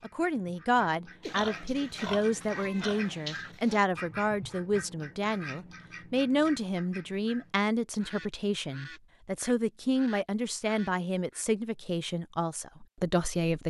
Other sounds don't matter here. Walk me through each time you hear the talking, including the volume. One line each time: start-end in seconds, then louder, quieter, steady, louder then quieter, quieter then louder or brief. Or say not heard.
0.0-13.6 steady.